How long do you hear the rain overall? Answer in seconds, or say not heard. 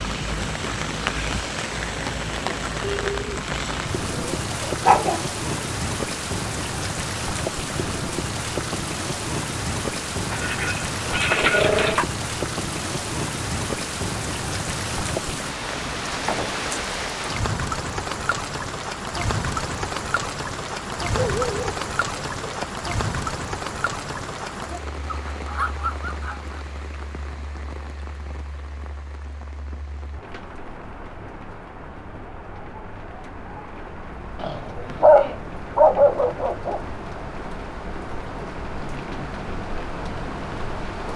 41 s.